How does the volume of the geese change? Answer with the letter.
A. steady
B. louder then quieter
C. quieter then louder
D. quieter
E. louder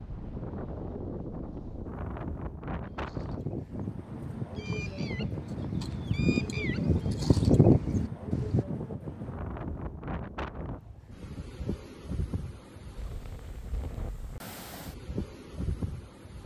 E.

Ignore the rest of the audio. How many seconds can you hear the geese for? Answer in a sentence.
The geese can be heard for 6 seconds in total.